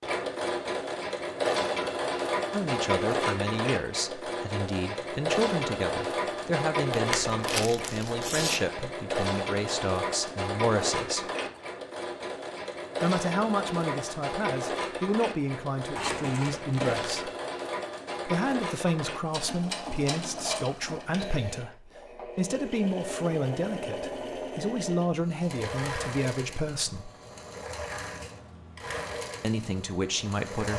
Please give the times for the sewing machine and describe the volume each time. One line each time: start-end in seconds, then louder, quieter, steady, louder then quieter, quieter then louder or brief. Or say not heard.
0.0-30.7 quieter.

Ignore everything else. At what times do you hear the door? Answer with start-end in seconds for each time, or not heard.
not heard.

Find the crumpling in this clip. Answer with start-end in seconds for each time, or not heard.
6.9-8.6, 15.9-17.2.